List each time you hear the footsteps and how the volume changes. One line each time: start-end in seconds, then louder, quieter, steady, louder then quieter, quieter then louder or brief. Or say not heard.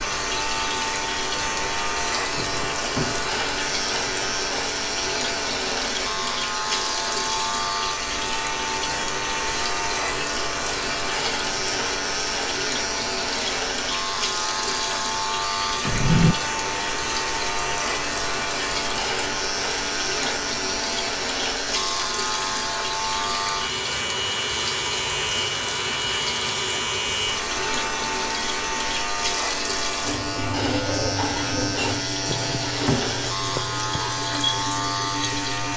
not heard.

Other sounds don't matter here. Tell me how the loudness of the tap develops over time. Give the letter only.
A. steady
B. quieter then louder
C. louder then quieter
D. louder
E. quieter
A.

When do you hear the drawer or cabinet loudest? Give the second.
16 s.